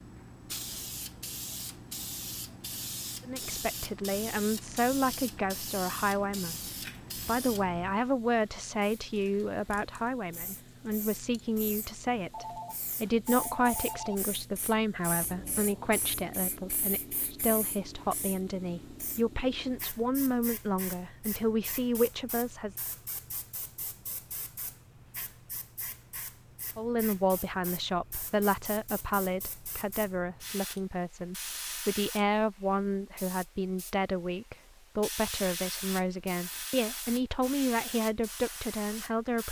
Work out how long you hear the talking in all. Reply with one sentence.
You can hear the talking for 32 seconds altogether.